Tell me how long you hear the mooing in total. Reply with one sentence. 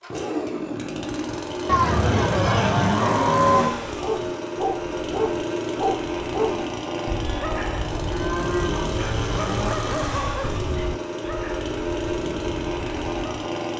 You can hear the mooing for 4 seconds altogether.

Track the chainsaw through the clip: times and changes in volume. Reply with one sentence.
You can hear the chainsaw from 0.0 to 13.7 s, at a steady volume.